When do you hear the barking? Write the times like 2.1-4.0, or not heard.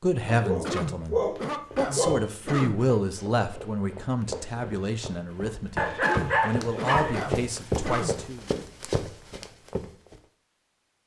0.2-2.2, 5.8-7.2.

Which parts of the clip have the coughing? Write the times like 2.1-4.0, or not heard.
0.6-2.8, 6.0-8.2.